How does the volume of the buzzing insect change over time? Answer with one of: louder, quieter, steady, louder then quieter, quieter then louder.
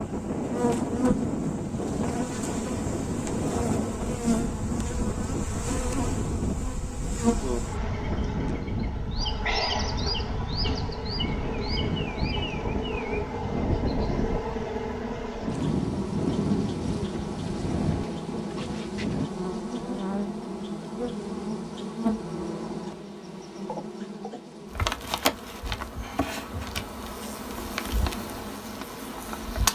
steady.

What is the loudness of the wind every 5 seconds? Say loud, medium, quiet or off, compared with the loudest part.
loud, loud, loud, loud, off, off.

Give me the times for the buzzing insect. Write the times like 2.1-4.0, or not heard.
0.0-29.6.